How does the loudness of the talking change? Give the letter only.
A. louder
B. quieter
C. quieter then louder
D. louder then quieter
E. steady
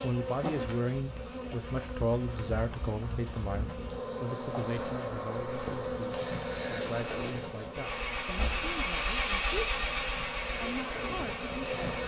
B.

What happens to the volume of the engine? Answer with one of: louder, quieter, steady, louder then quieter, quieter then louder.
louder then quieter.